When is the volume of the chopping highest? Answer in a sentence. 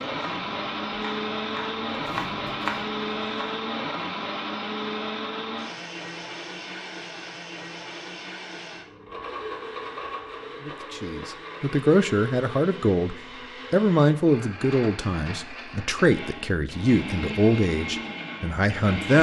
The volume of the chopping peaks at 3 seconds.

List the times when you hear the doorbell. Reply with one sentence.
You can't hear the doorbell here.